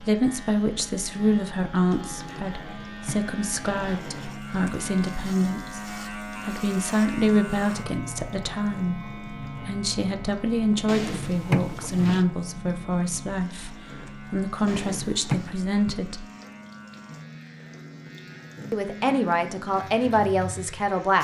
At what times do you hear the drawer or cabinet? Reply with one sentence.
The drawer or cabinet can be heard from 2.4 to 4.4 s, from 10.8 to 12.2 s and from 14.7 to 15.6 s.